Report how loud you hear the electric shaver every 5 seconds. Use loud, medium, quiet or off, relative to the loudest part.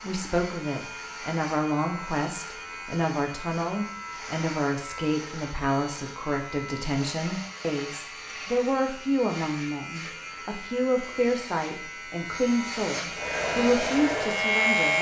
medium, medium, loud.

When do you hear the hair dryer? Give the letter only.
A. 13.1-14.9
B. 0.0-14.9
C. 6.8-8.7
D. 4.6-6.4
A.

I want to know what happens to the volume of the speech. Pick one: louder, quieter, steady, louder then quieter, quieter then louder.
steady.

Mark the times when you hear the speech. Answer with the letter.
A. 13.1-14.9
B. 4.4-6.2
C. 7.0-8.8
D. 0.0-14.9
D.